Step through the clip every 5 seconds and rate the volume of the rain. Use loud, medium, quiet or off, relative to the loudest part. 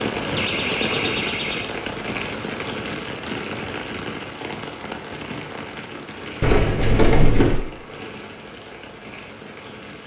loud, medium.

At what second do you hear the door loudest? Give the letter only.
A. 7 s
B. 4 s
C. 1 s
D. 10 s
A.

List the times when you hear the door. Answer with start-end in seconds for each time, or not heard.
0.3-1.7, 6.4-7.6.